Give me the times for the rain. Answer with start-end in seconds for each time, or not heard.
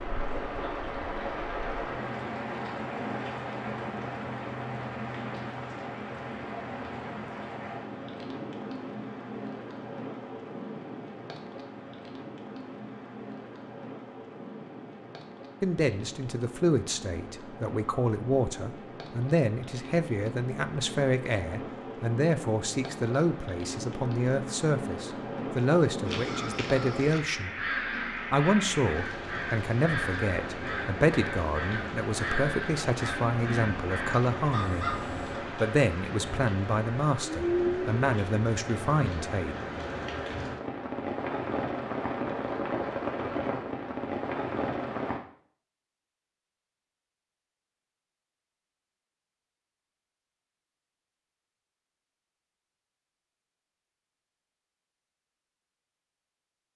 0.0-45.2.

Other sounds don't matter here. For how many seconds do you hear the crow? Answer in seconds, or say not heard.
9 s.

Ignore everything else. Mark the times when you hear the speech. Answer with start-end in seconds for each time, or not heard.
15.6-27.5, 28.3-34.9, 35.5-39.5.